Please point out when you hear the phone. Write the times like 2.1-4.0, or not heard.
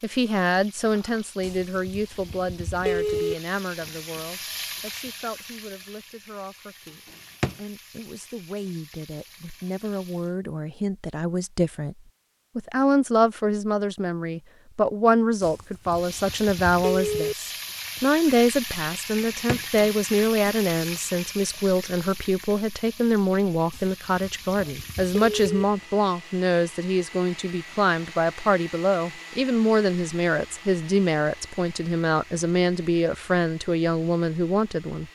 1.4-3.4, 15.4-17.4, 23.7-25.6.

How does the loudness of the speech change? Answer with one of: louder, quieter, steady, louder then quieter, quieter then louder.
louder.